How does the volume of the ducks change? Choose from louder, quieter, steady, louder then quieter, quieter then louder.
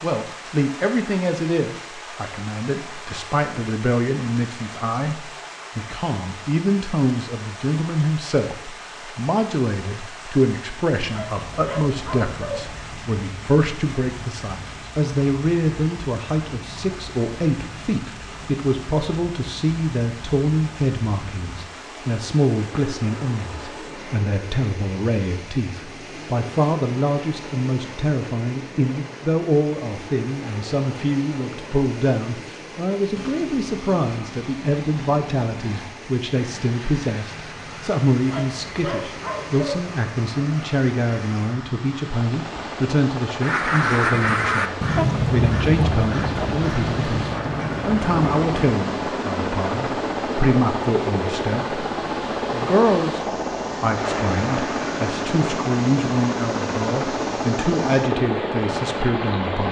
quieter.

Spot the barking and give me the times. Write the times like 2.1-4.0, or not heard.
11.1-12.7, 38.2-39.9.